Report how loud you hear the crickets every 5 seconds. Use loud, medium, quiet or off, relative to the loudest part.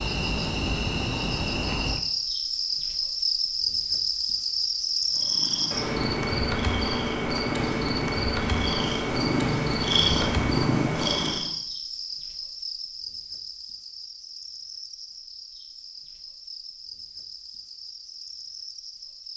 loud, loud, medium, quiet.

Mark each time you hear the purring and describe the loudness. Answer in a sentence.
You can hear the purring from 5.1 to 11.5 s, getting louder.